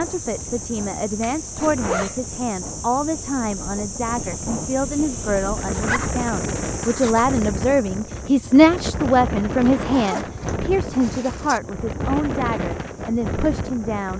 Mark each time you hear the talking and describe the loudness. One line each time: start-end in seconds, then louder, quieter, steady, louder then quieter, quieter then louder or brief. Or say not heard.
0.0-14.1 louder then quieter.